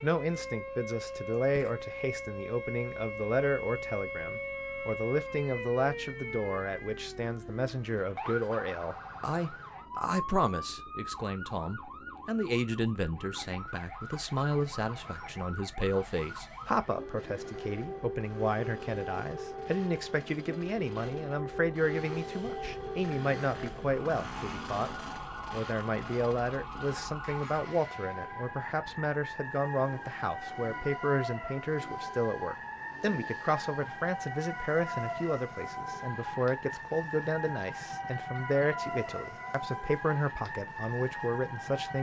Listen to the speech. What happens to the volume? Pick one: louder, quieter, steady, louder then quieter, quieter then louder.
steady.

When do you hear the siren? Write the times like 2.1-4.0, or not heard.
0.0-41.9.